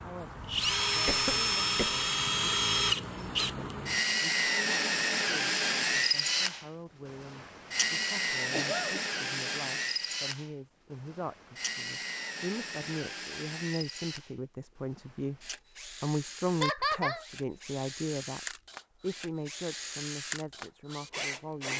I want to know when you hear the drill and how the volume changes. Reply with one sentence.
The drill can be heard from 0.0 to 21.7 s, getting quieter.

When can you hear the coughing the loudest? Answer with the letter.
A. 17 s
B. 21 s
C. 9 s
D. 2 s
A.